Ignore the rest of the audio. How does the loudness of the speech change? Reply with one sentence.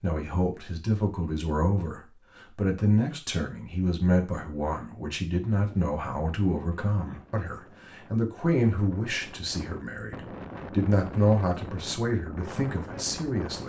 The volume of the speech stays about the same.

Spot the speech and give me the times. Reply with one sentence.
You can hear the speech from 0.0 to 13.6 s.